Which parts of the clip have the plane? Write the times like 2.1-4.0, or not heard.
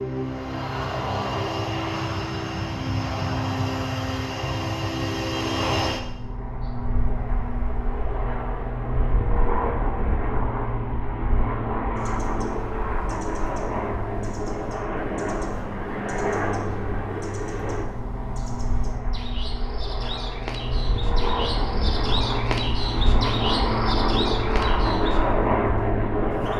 0.0-26.5.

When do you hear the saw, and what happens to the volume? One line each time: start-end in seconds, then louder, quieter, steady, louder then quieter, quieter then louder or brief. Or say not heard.
not heard.